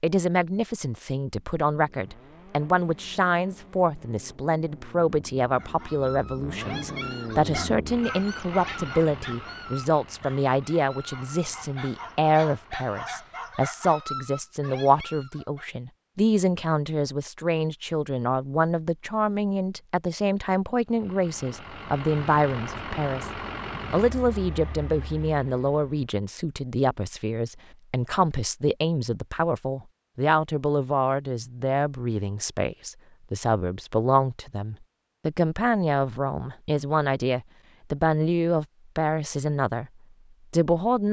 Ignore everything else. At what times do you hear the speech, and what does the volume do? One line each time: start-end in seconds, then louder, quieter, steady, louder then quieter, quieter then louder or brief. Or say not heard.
0.0-23.3 steady
23.9-39.9 steady
40.5-41.0 brief.